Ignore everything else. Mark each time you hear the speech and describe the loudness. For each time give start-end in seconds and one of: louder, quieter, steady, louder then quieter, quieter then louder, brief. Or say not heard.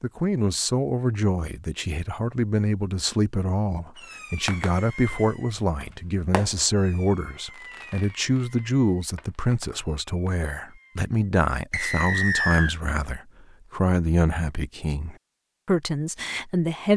0.0-16.9 steady.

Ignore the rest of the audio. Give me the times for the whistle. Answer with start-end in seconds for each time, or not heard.
11.7-12.8.